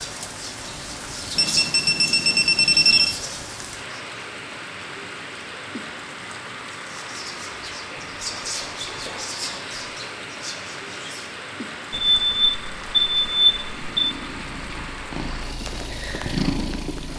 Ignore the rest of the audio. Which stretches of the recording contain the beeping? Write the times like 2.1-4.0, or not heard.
1.4-3.1, 11.9-14.2.